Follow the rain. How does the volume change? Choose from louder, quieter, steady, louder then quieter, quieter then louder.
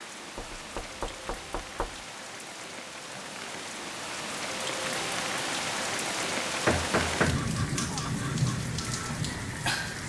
louder.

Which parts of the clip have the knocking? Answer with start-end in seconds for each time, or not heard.
0.3-2.0, 6.7-8.0.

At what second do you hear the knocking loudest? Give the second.
7 s.